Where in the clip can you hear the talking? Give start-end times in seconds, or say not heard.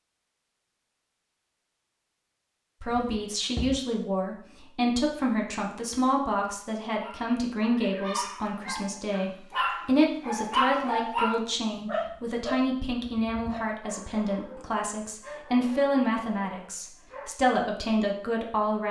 2.8-18.8.